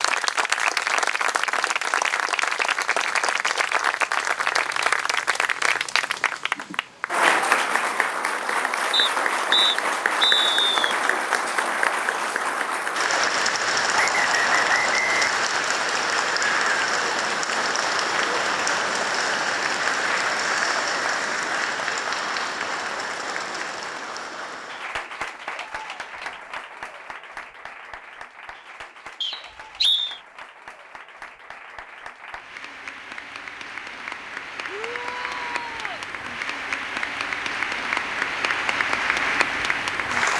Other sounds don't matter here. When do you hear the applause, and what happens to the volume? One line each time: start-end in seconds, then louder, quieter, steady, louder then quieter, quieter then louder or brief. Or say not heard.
0.0-40.3 quieter then louder.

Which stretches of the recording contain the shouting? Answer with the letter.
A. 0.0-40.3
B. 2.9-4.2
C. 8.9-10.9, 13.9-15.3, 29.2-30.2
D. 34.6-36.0
D.